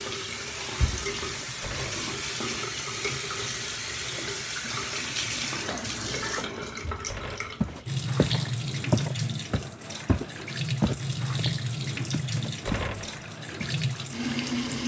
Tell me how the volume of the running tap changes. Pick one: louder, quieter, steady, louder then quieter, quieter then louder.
steady.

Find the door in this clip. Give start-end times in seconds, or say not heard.
1.4-2.1, 6.8-7.6, 12.3-13.2.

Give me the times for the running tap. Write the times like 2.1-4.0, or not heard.
0.0-14.8.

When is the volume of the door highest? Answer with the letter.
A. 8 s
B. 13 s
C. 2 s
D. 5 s
B.